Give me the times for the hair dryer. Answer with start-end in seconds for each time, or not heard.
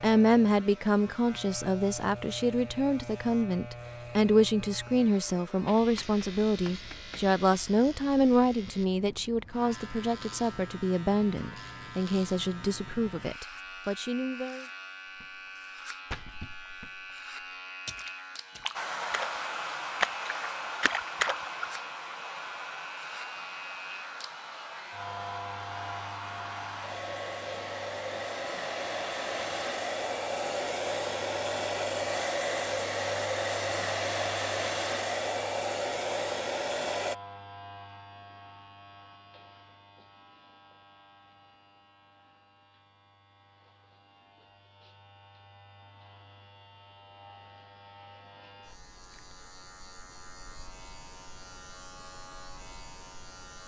18.7-37.1.